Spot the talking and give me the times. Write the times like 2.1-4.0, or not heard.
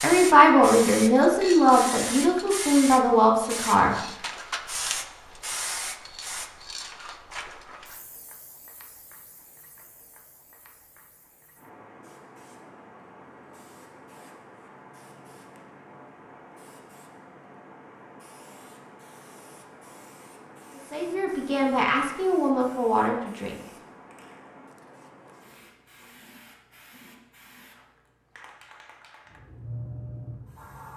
0.0-4.0, 20.8-23.6.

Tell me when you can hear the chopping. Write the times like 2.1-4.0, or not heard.
not heard.